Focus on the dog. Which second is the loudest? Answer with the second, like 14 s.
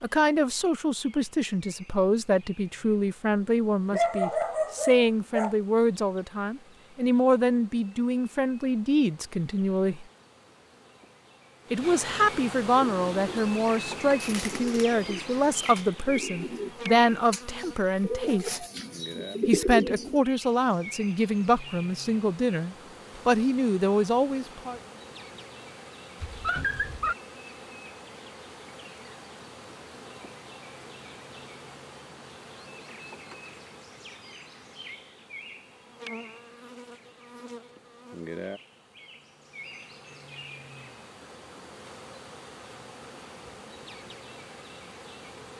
4 s.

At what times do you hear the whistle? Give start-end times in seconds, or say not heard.
not heard.